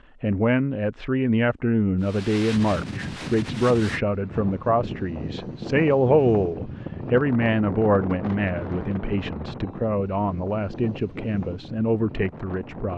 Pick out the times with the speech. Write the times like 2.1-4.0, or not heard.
0.2-12.9.